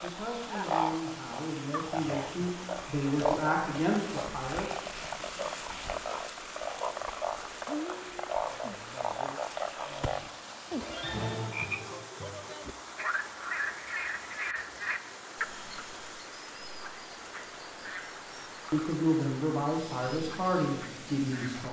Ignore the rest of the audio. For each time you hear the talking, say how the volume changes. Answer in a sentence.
You can hear the talking from 0.0 to 4.7 s, getting louder; and briefly from 18.7 to 21.6 s.